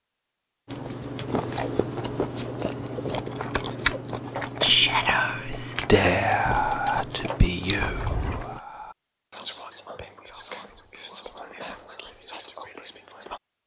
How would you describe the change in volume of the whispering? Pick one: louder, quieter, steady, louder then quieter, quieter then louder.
quieter.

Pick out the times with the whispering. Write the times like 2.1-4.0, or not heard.
4.6-13.4.